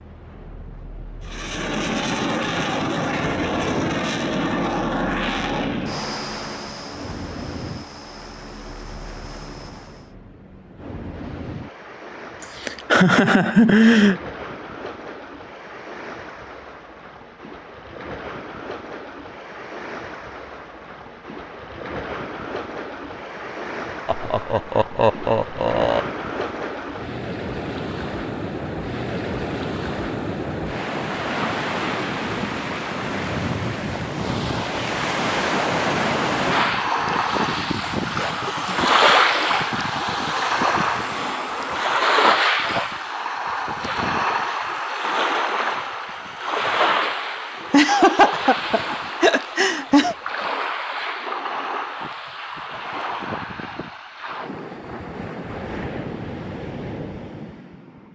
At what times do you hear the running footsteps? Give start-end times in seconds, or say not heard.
not heard.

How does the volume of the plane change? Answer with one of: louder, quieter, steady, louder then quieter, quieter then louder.
quieter.